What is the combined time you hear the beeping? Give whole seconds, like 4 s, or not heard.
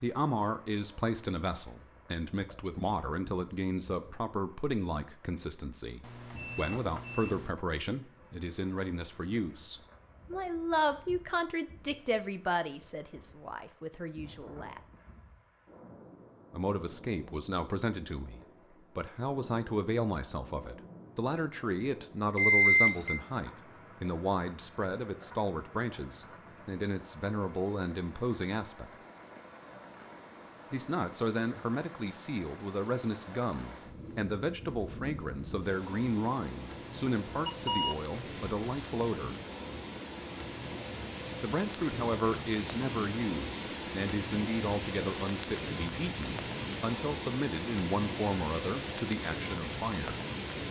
4 s.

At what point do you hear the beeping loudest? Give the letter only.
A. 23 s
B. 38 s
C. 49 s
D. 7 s
A.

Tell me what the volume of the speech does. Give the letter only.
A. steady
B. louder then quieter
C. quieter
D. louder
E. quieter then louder
A.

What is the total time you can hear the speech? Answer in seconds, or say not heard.
45 s.